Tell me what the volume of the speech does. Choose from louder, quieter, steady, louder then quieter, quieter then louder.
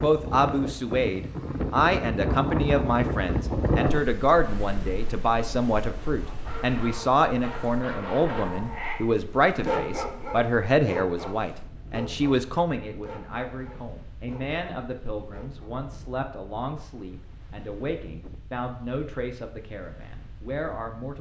quieter.